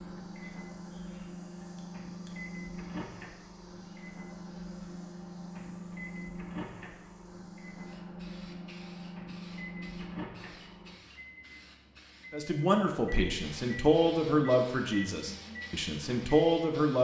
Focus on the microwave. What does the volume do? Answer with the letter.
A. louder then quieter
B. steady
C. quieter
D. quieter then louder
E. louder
B.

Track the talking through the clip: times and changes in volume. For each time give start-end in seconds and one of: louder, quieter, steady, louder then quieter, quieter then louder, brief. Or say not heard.
12.3-17.0 quieter then louder.